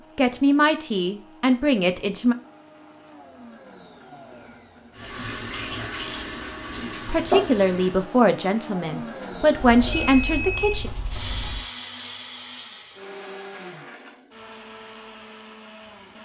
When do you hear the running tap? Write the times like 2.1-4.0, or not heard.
5.0-8.1.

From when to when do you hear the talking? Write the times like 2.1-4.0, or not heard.
0.1-2.4, 7.0-10.9.